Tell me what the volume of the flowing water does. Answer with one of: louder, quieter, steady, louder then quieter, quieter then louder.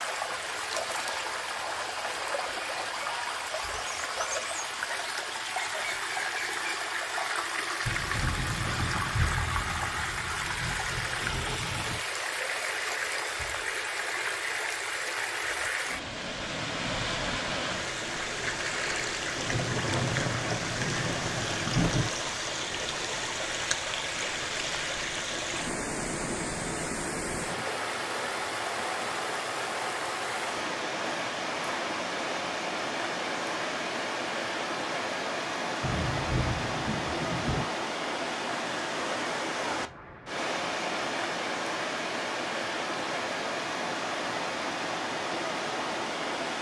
steady.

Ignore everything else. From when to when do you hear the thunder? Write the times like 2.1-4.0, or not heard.
7.8-12.0, 19.4-22.1, 35.8-37.6.